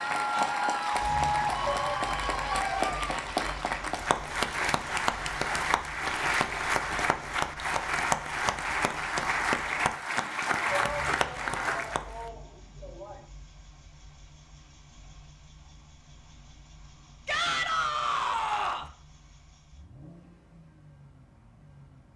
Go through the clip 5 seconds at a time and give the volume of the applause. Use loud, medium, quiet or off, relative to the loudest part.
loud, loud, loud, off, off.